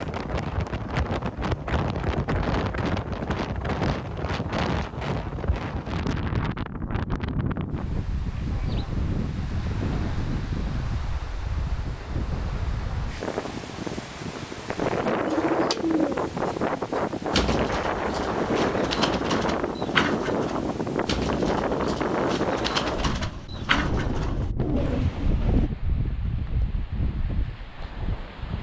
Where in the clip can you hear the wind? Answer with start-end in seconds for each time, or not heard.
0.0-28.5.